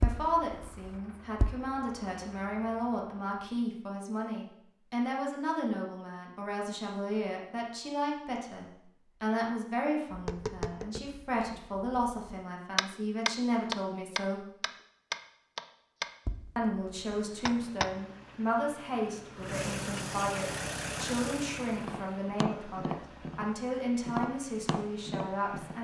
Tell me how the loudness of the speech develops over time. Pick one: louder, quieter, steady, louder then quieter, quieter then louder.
steady.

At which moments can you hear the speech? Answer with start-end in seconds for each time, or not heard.
0.0-14.4, 16.6-25.7.